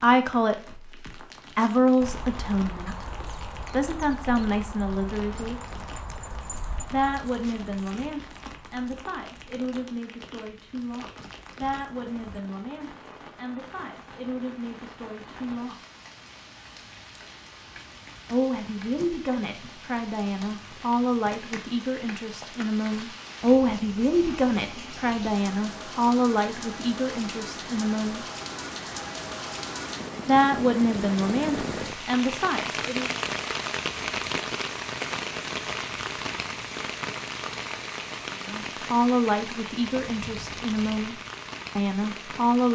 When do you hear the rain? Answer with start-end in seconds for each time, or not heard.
0.0-42.6.